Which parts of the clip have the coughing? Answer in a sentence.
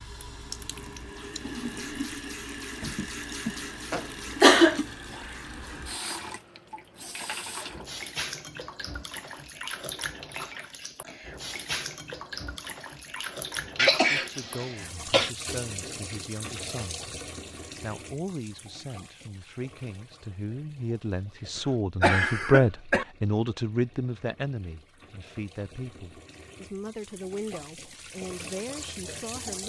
You can hear the coughing from 2.8 to 4.8 s, from 13.8 to 15.3 s and from 21.6 to 23.1 s.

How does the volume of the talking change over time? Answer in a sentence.
The volume of the talking goes up, then down.